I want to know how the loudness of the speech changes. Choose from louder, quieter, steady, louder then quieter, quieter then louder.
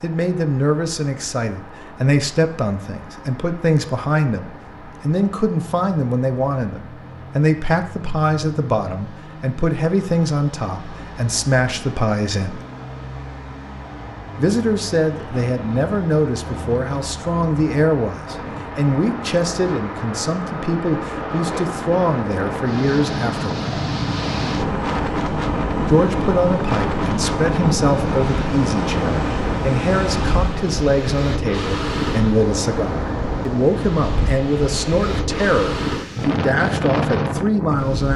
steady.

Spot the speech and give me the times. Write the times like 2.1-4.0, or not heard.
0.0-12.6, 14.3-23.6, 25.9-38.1.